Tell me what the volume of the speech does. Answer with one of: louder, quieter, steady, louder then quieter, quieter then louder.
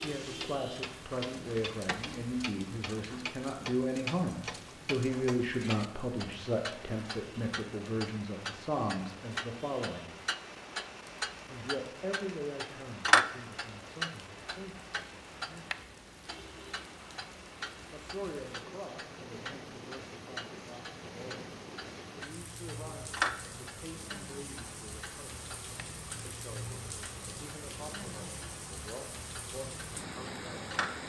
quieter.